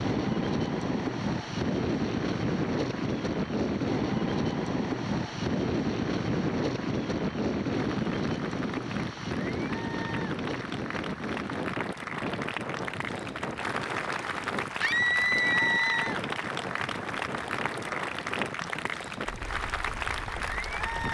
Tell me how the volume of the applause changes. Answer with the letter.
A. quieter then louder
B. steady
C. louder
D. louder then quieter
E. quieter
C.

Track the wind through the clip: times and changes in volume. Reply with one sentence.
The wind can be heard from 0.0 to 21.0 s, getting quieter.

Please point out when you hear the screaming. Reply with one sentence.
You can hear the screaming from 14.8 to 16.1 s.